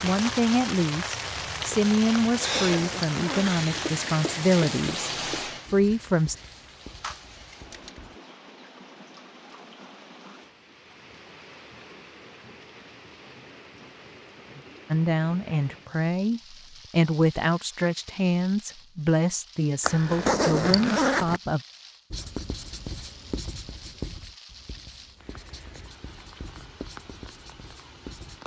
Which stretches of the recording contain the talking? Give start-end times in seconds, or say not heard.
0.0-5.1, 5.7-6.3, 14.9-21.6.